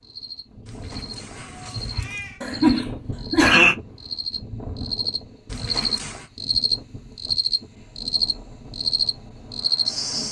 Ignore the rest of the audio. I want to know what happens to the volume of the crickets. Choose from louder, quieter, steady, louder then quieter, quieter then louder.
louder.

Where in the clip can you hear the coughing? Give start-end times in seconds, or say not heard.
2.4-3.8.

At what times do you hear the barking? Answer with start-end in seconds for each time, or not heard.
not heard.